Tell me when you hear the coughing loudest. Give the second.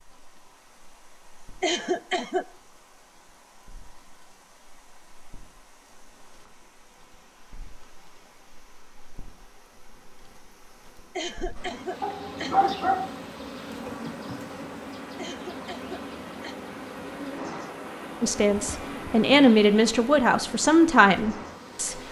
2 s.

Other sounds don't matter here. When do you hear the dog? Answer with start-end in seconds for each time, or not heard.
12.0-13.1.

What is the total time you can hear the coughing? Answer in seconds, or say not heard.
4 s.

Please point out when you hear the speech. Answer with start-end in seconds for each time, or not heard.
18.2-22.0.